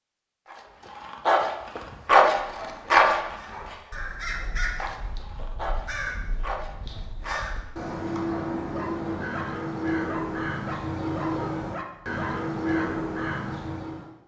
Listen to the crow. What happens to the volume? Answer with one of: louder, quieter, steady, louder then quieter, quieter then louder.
louder.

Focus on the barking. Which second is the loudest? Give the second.
2 s.